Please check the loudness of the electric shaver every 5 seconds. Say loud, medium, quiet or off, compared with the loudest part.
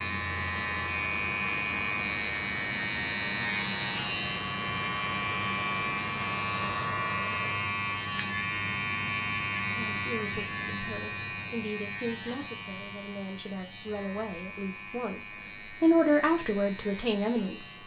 loud, loud, medium, quiet.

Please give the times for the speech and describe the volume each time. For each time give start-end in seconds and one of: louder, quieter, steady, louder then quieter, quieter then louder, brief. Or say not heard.
9.7-17.8 louder.